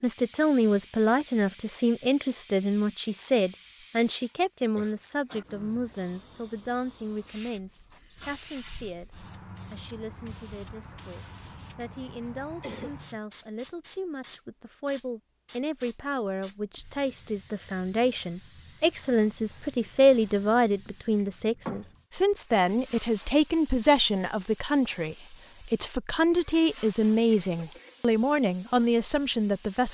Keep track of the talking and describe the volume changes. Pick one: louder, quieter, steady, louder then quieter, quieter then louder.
quieter then louder.